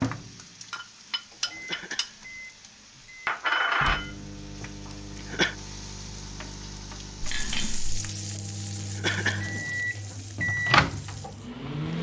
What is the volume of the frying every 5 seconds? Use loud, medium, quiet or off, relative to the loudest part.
loud, medium, quiet.